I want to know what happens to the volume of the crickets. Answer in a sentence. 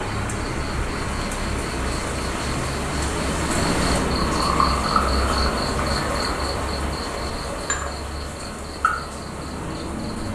The volume of the crickets goes up, then down.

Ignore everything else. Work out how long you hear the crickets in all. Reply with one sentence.
You can hear the crickets for 10 seconds altogether.